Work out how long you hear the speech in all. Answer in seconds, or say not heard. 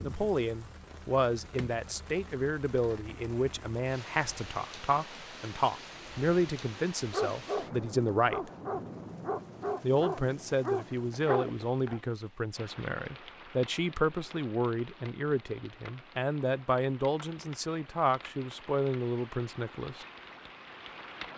19 s.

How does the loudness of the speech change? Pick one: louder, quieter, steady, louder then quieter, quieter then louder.
steady.